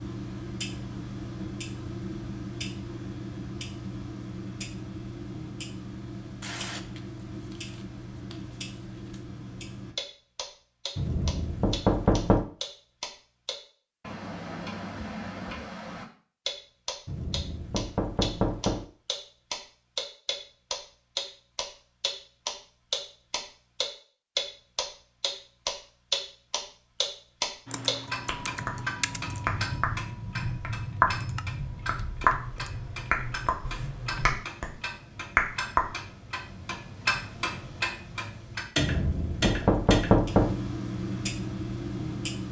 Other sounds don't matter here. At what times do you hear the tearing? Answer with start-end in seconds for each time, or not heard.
6.4-9.2.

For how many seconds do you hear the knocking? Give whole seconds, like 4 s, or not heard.
5 s.